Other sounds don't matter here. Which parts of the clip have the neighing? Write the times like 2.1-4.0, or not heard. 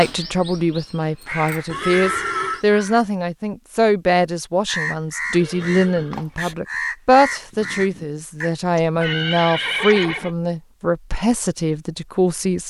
1.6-2.6, 5.3-6.5, 8.8-10.3.